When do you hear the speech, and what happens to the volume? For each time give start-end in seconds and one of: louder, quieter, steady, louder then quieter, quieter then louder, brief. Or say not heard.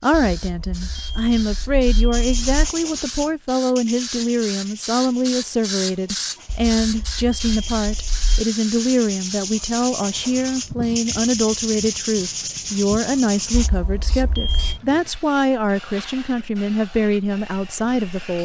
0.0-18.3 steady.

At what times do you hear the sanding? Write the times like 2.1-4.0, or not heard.
2.1-13.7.